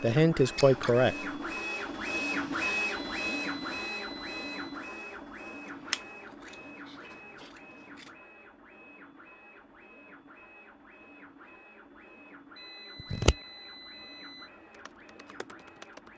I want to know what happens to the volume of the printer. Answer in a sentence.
The volume of the printer goes down.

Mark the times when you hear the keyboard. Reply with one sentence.
You can hear the keyboard from 14.7 to 16.1 s.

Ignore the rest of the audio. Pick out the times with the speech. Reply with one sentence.
You can hear the speech from 0.0 to 1.2 s.